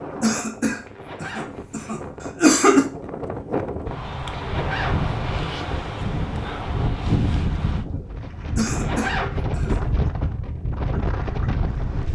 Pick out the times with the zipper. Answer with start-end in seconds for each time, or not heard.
0.8-2.0, 4.3-5.8, 8.7-9.6.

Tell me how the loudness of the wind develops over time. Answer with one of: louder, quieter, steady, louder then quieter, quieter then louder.
louder.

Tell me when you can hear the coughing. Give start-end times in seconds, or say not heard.
0.2-2.9, 8.6-9.8.